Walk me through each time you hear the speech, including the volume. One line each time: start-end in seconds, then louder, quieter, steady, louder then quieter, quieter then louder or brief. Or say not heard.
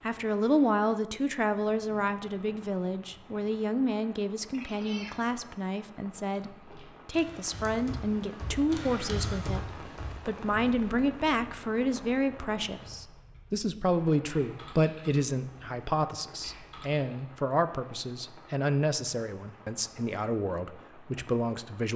0.0-21.9 steady.